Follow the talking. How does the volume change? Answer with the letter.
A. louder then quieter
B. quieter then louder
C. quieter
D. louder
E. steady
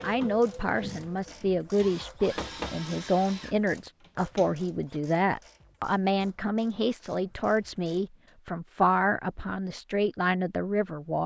E.